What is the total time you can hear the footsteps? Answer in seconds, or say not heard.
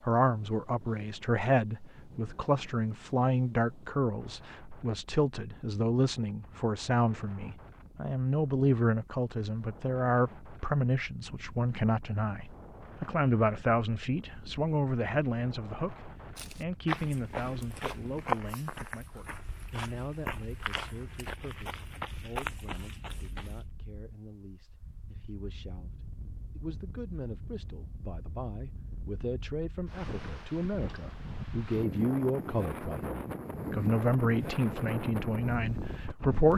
7 s.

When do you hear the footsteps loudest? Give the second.
18 s.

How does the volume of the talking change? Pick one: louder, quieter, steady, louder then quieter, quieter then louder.
quieter then louder.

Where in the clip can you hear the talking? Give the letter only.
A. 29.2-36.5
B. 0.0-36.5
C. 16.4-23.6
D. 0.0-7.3
B.